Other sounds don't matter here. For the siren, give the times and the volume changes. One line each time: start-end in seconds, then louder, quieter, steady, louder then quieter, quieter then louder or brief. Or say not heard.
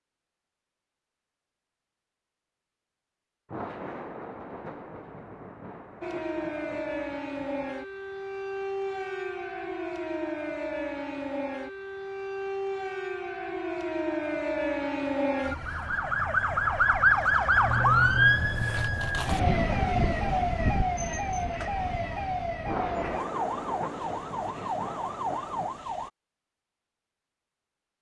6.0-26.1 louder then quieter.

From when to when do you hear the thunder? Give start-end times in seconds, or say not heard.
3.5-7.8, 22.6-25.9.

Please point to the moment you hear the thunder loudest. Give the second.
23 s.